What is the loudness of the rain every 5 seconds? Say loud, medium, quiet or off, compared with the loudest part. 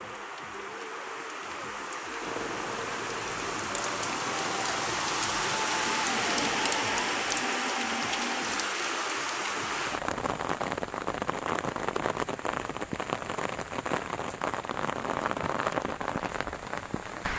medium, loud, loud, loud.